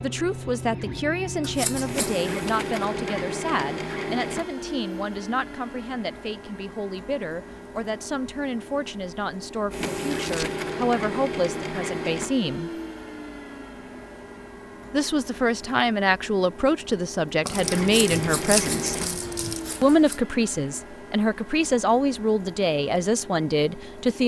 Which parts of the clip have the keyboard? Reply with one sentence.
The keyboard can't be heard in this clip.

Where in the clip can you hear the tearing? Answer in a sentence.
The tearing can be heard from 10.1 to 10.5 s and from 17.4 to 19.6 s.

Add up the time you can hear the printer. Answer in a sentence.
The printer can be heard for 24 seconds in total.